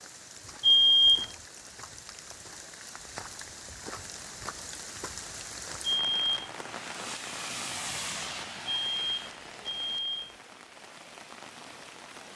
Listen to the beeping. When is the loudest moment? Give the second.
1 s.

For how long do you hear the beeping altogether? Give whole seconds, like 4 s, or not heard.
3 s.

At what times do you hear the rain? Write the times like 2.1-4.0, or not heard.
0.0-12.3.